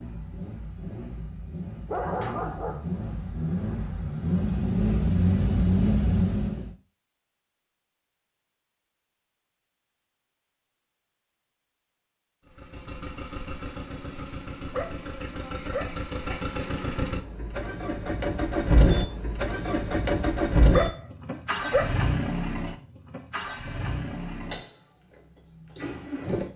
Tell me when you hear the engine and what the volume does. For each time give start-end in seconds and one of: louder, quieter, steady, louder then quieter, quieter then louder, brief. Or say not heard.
0.0-6.7 louder
12.4-26.5 louder then quieter.